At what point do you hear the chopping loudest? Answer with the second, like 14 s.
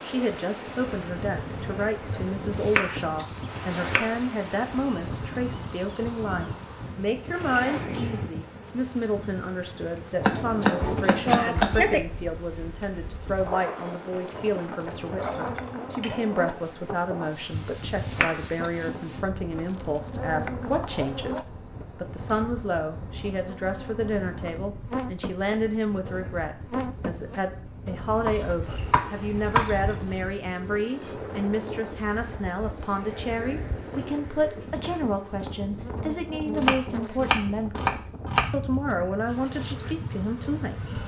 11 s.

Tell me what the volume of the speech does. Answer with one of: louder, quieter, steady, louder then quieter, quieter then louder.
steady.